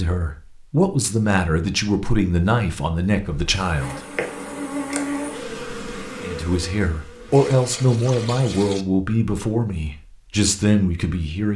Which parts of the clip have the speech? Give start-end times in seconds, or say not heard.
0.0-4.0, 6.2-11.5.